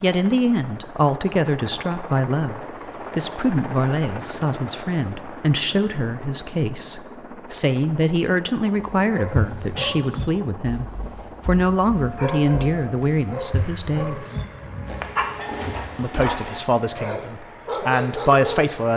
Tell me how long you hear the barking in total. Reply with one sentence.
The barking can be heard for 10 seconds in total.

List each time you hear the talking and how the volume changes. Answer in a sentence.
The talking can be heard from 0.0 to 14.3 s, at a steady volume; and briefly from 15.9 to 18.9 s.